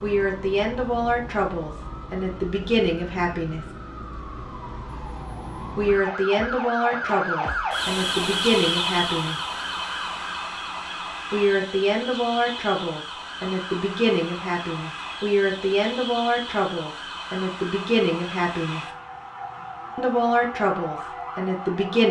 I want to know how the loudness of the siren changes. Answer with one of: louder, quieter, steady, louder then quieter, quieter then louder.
louder then quieter.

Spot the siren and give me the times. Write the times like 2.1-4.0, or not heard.
0.0-22.0.